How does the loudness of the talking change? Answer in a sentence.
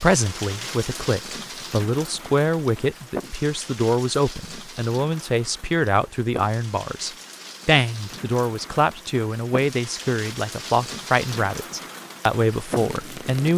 The volume of the talking stays about the same.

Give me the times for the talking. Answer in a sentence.
You can hear the talking from 0.0 to 13.5 s.